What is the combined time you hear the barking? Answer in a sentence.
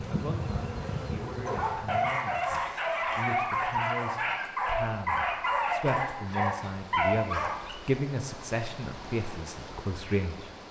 The barking can be heard for 6 seconds in total.